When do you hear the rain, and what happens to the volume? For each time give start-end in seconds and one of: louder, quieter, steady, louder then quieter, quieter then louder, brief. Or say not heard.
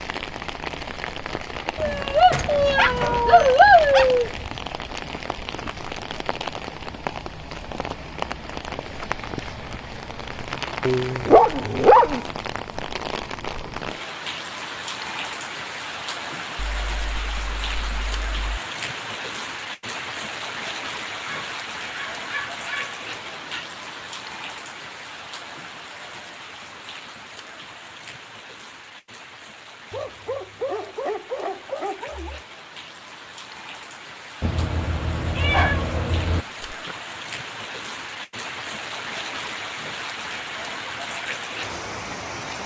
0.0-42.6 quieter then louder.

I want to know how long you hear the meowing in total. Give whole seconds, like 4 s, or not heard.
5 s.